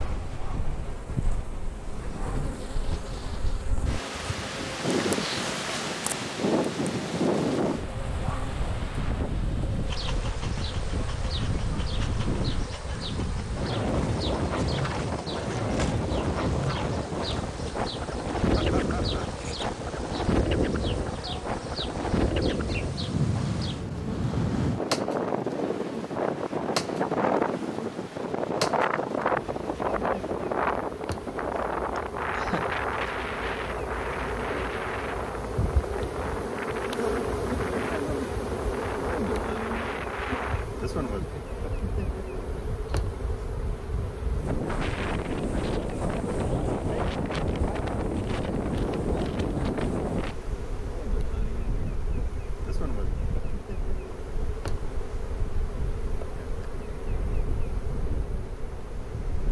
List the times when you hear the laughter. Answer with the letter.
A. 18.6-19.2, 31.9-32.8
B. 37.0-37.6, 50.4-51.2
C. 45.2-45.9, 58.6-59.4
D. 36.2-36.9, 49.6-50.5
A.